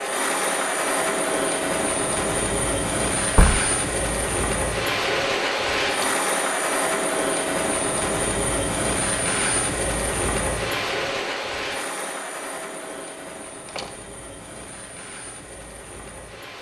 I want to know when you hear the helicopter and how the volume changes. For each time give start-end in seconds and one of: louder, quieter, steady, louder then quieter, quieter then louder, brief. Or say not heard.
0.0-16.5 quieter.